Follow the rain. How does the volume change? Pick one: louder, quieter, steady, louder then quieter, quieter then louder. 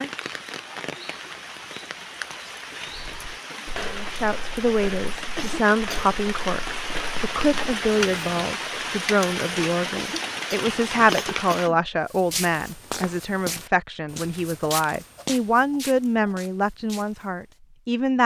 louder.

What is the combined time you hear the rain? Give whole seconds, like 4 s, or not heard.
12 s.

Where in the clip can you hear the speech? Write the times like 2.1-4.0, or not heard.
4.0-18.2.